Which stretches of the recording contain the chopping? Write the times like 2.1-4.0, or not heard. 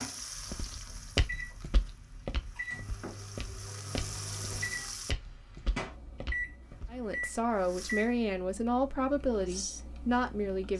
not heard.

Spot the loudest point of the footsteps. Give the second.
1 s.